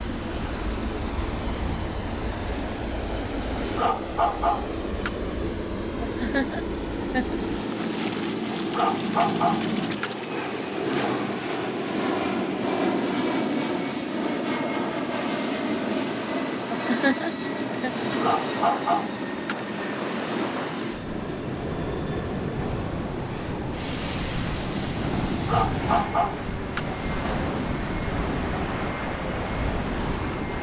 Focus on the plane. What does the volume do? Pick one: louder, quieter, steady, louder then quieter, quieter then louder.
louder then quieter.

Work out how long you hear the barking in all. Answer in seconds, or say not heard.
6 s.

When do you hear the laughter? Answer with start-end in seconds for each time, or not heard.
6.0-7.3, 16.7-17.9.